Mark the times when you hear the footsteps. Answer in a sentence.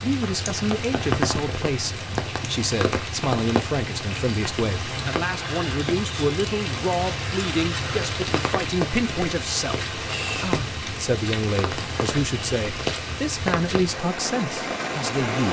The footsteps can't be heard in this clip.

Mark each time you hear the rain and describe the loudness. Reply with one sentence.
The rain can be heard from 0.0 to 15.4 s, at a steady volume.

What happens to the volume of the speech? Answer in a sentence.
The loudness of the speech stays about the same.